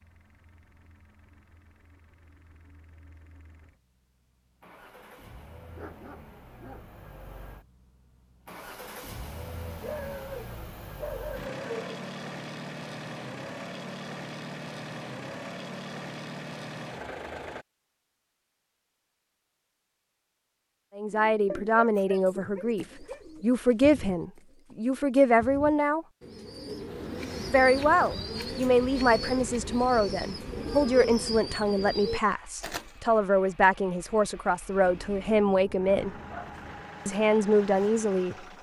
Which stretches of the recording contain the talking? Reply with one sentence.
You can hear the talking from 20.9 to 26.1 s, from 27.5 to 36.1 s and from 37.0 to 38.4 s.